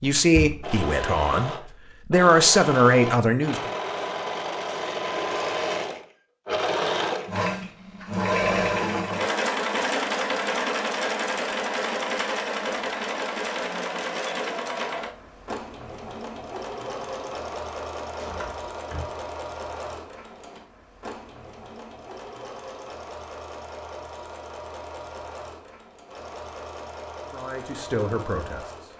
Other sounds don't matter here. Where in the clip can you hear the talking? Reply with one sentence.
You can hear the talking from 0.0 to 3.7 s and from 27.3 to 28.9 s.